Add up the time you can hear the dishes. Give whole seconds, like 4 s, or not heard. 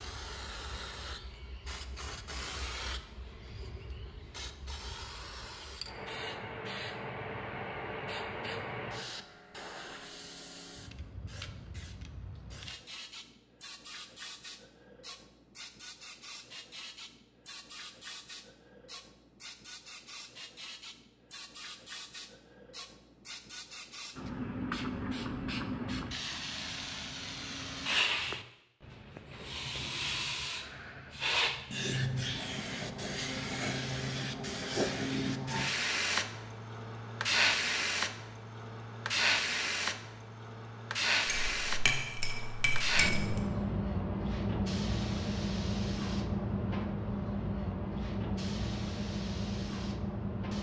2 s.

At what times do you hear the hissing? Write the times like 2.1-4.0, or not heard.
0.0-50.5.